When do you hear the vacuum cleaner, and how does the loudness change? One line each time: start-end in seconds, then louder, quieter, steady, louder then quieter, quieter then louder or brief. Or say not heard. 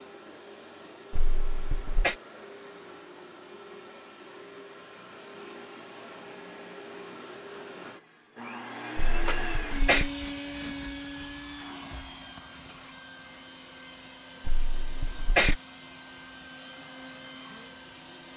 0.0-18.3 louder then quieter.